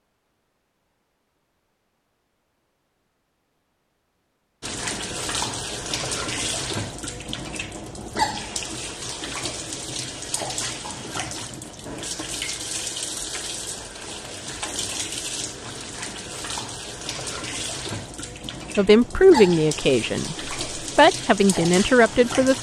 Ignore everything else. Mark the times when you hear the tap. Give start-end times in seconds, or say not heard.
4.6-22.5.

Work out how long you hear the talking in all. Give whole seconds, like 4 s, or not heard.
4 s.